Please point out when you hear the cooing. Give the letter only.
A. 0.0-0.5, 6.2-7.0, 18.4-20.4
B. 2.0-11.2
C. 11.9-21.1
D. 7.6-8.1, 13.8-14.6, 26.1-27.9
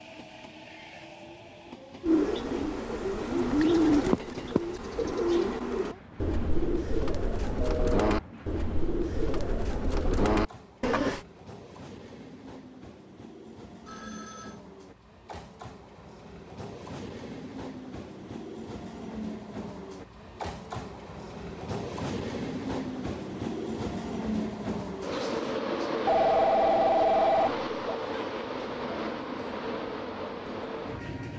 B.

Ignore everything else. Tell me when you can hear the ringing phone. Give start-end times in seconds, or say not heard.
7.6-8.1, 13.8-14.6, 26.1-27.9.